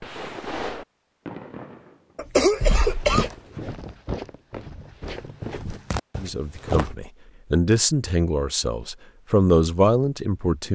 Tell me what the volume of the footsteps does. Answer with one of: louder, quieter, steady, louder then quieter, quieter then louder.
quieter then louder.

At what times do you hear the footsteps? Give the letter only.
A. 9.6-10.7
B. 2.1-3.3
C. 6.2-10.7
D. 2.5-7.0
D.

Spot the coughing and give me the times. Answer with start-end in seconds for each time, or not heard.
2.1-3.3.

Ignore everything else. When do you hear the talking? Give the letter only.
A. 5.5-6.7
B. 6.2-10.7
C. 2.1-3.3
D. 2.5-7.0
B.